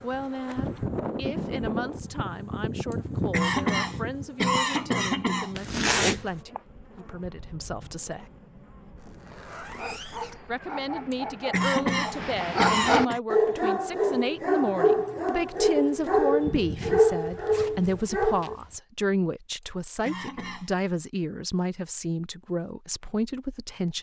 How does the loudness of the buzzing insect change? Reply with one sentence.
The loudness of the buzzing insect goes down.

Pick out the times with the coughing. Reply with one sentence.
The coughing can be heard from 2.9 to 5.5 s, from 11.1 to 13.2 s and from 19.6 to 20.7 s.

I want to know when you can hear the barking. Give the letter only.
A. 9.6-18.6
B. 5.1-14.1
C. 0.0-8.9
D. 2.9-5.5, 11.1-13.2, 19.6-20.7
A.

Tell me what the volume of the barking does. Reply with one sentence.
The volume of the barking goes up.